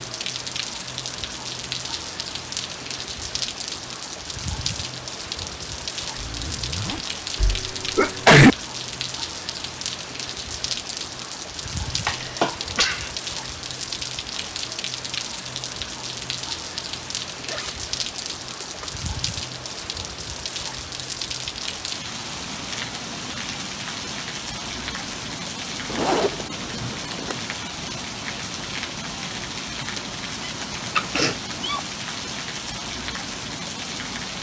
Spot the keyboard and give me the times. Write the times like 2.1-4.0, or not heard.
not heard.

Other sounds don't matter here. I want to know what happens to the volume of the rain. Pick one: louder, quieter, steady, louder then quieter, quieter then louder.
steady.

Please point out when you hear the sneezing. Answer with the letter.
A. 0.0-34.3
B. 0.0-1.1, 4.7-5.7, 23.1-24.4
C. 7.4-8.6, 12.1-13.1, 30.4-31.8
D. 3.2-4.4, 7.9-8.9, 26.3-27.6
C.